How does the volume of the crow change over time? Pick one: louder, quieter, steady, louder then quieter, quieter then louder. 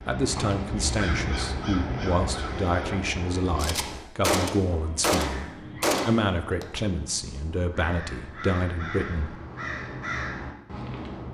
quieter then louder.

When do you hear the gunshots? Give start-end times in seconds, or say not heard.
3.5-6.7.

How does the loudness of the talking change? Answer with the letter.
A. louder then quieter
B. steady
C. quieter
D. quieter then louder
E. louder
B.